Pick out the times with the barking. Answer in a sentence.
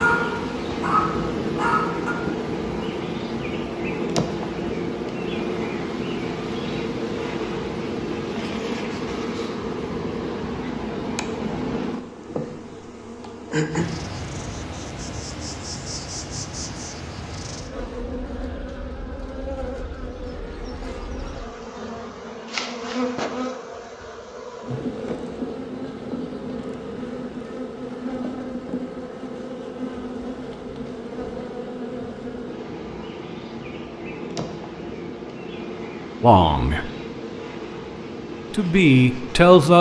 You can hear the barking from 0.0 to 2.1 s.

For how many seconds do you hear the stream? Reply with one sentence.
The stream can't be heard in this clip.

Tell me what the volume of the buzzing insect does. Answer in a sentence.
The loudness of the buzzing insect goes down.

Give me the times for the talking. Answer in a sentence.
You can hear the talking from 36.2 to 36.9 s and from 38.5 to 39.7 s.